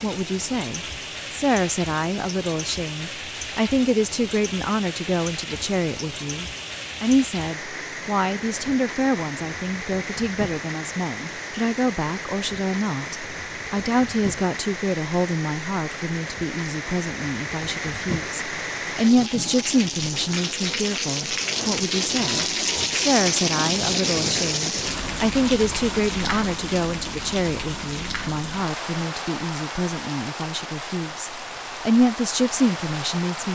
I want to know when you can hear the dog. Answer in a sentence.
The dog can't be heard in this clip.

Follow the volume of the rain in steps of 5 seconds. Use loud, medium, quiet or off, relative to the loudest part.
medium, medium, medium, medium, loud, medium, medium.